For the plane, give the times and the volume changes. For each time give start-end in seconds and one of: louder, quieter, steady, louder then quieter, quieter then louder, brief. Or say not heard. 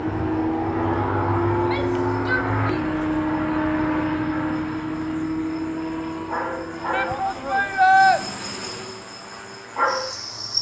0.0-10.5 quieter.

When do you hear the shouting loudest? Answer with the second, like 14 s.
8 s.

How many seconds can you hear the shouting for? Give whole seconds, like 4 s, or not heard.
3 s.